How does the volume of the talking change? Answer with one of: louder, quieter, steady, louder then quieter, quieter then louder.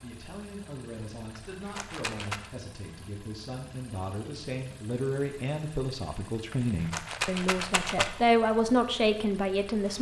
louder.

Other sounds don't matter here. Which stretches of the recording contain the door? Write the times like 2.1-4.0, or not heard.
not heard.